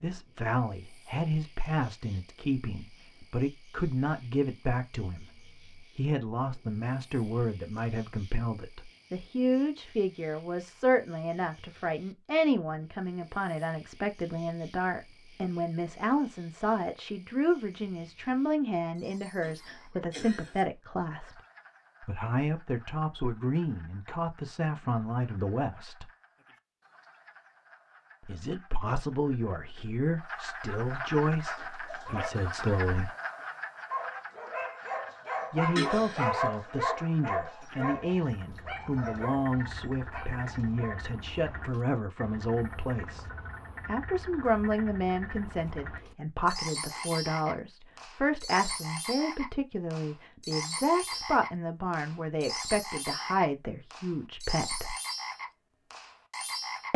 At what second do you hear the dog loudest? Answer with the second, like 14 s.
36 s.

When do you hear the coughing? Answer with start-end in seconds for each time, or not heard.
19.4-20.6, 35.8-36.2.